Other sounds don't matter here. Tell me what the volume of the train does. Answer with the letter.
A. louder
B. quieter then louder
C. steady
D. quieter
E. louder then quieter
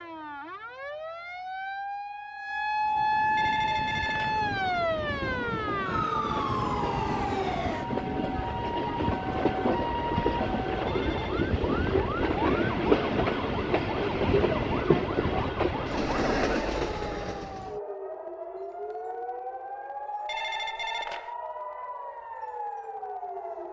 A.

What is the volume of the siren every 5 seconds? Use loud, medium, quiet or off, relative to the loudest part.
loud, loud, medium, medium, medium.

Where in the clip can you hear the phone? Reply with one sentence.
The phone can be heard from 3.4 to 4.4 s, from 10.8 to 11.5 s and from 20.2 to 21.4 s.